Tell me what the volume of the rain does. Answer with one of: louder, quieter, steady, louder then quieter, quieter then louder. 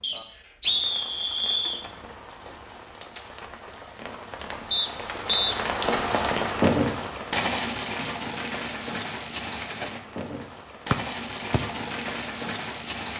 louder then quieter.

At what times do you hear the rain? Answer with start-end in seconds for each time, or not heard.
0.0-13.1.